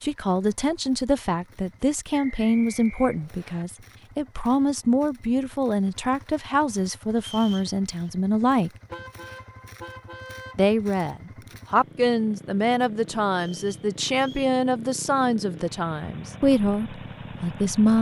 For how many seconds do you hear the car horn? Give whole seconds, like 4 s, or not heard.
2 s.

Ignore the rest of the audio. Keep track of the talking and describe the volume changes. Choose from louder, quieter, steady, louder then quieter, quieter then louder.
steady.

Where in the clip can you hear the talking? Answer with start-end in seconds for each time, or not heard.
0.0-8.7, 10.6-17.9.